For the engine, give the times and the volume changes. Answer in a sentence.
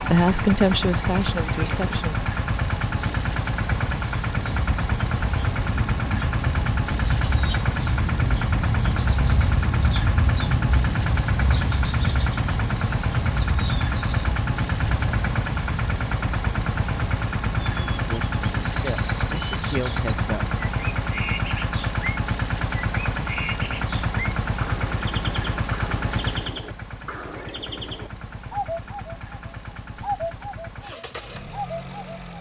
The engine can be heard from 0.0 to 32.3 s, getting quieter.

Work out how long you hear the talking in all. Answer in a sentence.
The talking can be heard for 5 seconds in total.